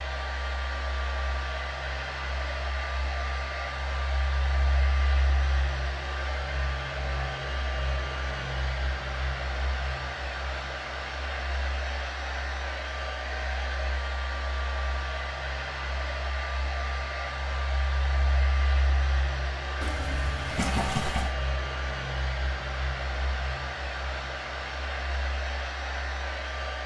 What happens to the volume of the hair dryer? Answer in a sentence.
The volume of the hair dryer stays about the same.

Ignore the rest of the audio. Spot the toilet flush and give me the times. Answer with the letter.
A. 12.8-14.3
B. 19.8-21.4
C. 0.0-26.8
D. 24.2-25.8
B.